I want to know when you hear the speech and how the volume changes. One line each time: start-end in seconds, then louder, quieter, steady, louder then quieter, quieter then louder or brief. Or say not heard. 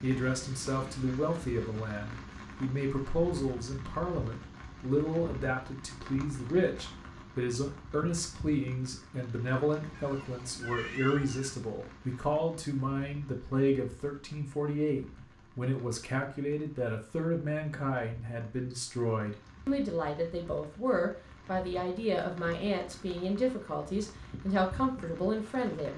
0.0-25.9 steady.